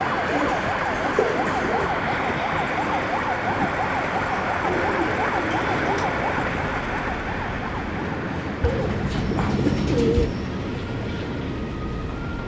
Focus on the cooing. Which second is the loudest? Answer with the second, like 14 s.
10 s.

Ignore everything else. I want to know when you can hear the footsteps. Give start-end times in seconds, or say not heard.
not heard.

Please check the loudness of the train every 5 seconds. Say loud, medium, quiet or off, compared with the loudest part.
medium, loud, loud.